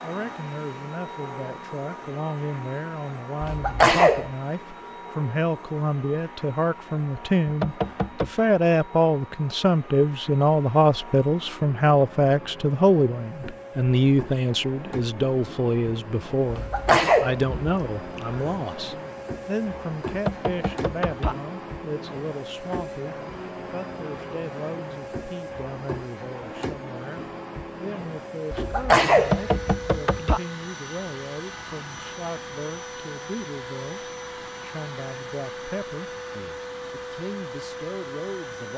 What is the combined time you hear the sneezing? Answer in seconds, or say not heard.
4 s.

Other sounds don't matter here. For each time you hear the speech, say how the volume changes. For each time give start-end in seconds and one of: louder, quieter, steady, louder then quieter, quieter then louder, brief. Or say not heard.
0.0-38.7 louder then quieter.